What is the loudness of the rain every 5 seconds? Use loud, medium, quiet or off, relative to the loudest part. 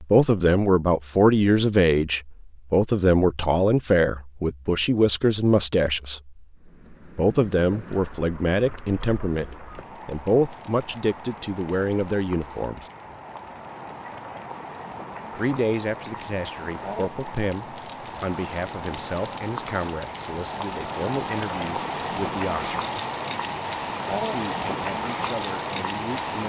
off, quiet, medium, medium, loud, loud.